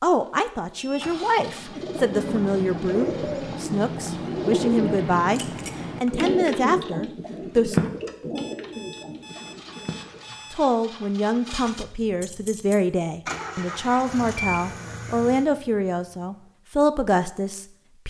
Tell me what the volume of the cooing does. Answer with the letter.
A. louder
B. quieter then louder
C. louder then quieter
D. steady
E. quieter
C.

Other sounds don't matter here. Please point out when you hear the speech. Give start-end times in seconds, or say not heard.
0.0-7.8, 10.5-18.0.